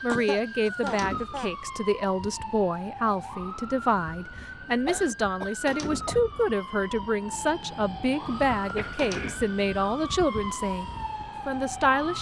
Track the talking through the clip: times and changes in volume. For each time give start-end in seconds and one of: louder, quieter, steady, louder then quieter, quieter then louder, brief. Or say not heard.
0.0-10.8 steady
11.4-12.1 brief.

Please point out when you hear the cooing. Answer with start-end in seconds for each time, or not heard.
not heard.